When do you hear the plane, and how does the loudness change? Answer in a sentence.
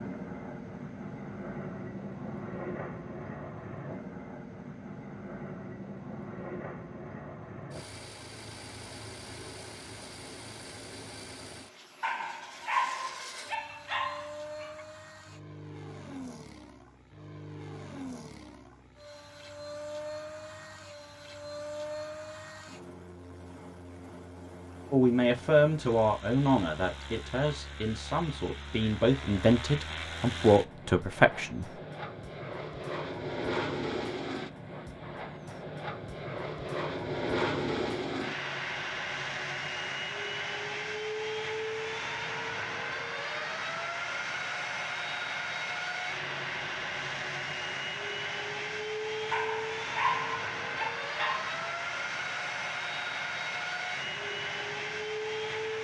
The plane can be heard from 0.0 to 55.8 s, getting louder.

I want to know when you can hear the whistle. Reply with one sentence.
The whistle can't be heard in this clip.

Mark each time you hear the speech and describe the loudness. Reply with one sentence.
The speech can be heard from 24.9 to 31.6 s, getting quieter then louder.